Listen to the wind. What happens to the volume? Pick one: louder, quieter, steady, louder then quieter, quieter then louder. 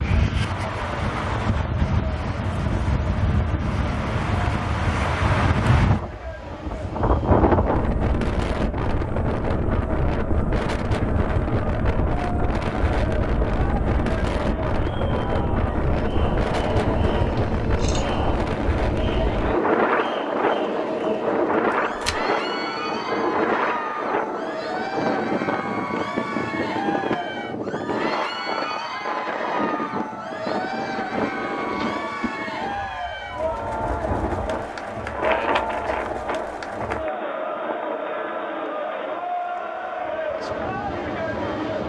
quieter.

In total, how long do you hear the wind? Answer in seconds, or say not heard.
42 s.